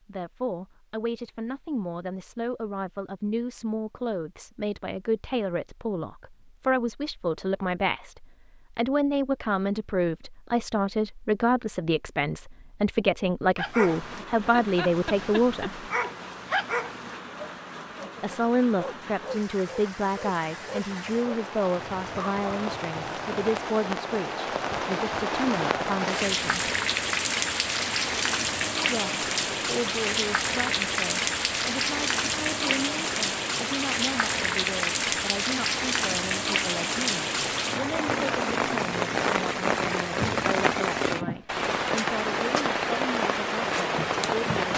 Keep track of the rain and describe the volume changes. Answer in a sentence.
The loudness of the rain goes up.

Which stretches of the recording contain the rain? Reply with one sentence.
You can hear the rain from 13.8 to 44.7 s.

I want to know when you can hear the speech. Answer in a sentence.
You can hear the speech from 0.1 to 15.8 s, from 18.2 to 26.7 s and from 28.9 to 44.7 s.